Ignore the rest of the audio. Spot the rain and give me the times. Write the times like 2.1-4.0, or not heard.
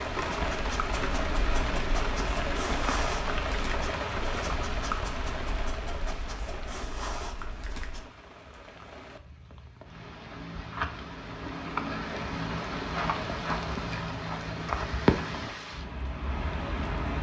0.0-17.1.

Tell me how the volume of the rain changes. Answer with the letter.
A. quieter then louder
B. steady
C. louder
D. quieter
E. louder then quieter
A.